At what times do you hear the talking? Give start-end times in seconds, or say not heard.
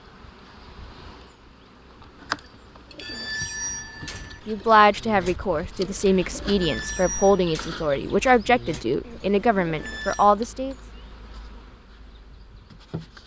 4.5-10.8.